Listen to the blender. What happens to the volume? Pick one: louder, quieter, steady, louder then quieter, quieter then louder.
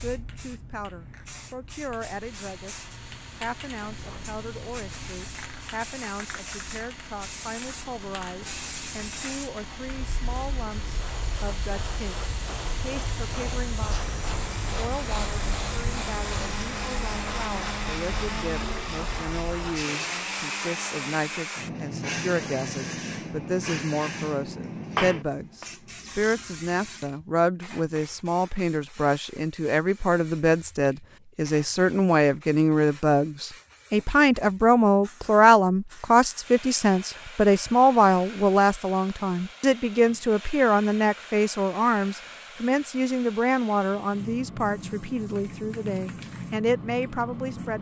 louder.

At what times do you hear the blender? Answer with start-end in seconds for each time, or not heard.
2.0-21.6.